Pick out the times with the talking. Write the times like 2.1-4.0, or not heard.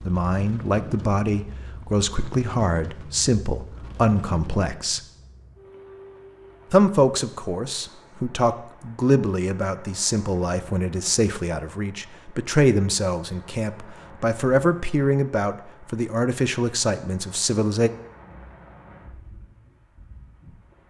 0.1-5.0, 6.7-17.9.